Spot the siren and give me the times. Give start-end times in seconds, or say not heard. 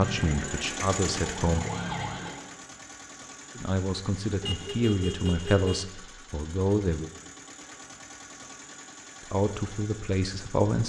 0.0-2.5.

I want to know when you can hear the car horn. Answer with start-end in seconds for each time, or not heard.
4.4-5.8.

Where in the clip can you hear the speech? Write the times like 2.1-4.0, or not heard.
0.0-1.7, 3.5-7.1, 9.3-10.8.